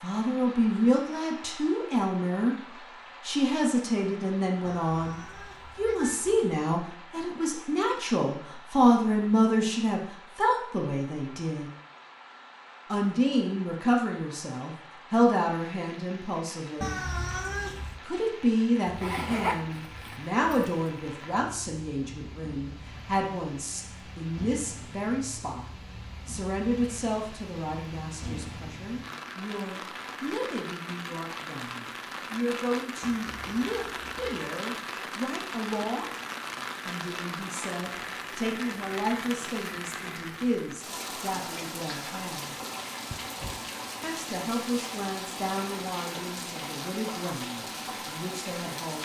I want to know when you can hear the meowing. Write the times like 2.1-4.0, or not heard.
4.7-6.4, 16.8-18.0, 33.0-34.5.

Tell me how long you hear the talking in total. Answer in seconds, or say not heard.
44 s.